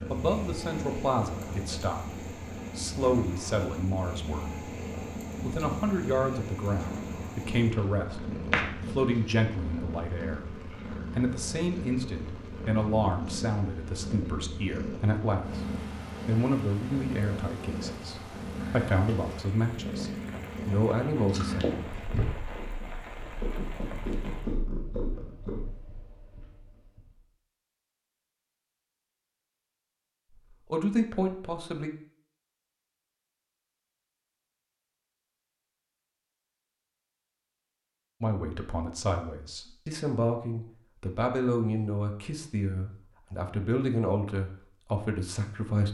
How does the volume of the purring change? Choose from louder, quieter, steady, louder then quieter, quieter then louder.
steady.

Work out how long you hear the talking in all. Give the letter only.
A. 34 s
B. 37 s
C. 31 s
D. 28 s
D.